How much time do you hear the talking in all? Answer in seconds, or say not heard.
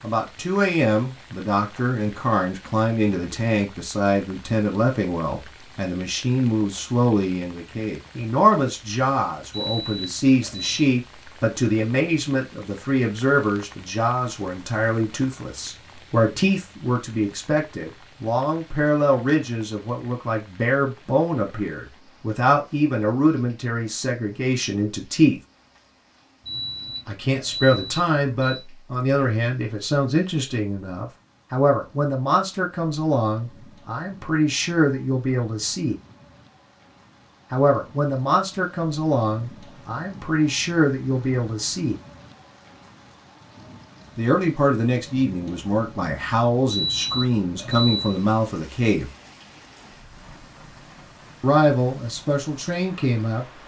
46 s.